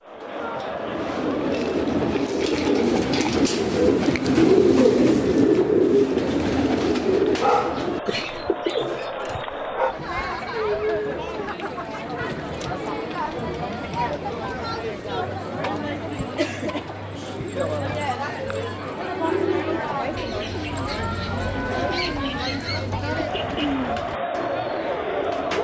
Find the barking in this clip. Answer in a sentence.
You can hear the barking from 7.3 to 9.9 s.